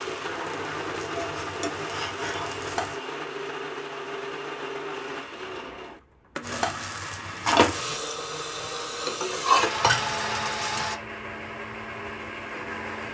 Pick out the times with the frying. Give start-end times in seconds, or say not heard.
0.2-3.0, 6.4-10.9.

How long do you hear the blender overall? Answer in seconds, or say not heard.
13 s.